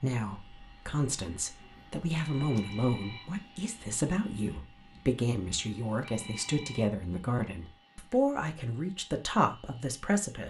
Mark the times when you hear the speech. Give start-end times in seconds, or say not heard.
0.0-10.4.